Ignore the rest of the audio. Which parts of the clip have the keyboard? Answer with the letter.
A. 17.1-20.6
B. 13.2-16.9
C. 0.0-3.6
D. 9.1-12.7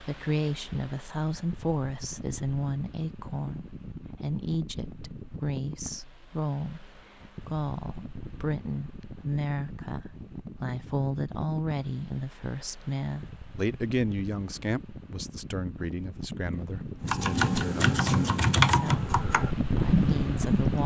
A.